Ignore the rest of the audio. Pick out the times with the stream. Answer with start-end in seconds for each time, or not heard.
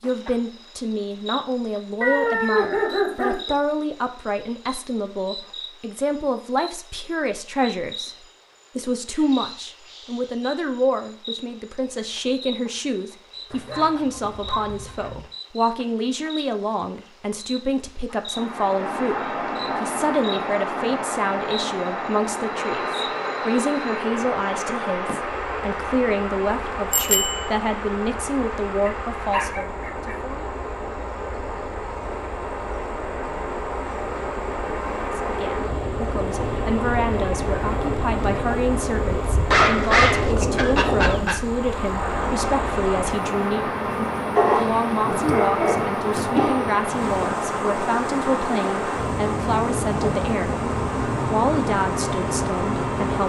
18.3-53.2.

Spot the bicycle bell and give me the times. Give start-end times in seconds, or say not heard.
26.9-27.5.